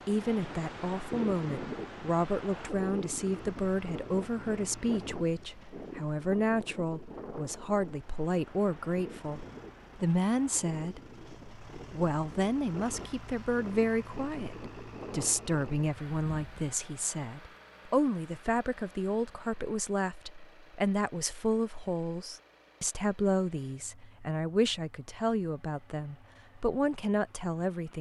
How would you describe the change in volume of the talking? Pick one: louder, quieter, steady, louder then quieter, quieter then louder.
steady.